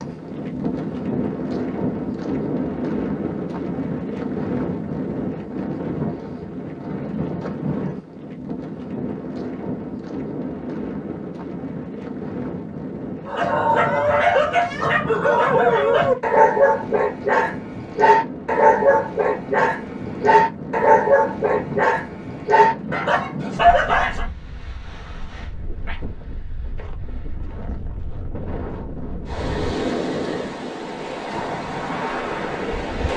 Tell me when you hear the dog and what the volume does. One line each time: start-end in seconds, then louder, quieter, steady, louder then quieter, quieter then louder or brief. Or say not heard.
13.2-24.2 steady.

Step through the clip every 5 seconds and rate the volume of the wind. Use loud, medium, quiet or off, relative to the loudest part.
loud, loud, medium, medium, medium, medium, loud.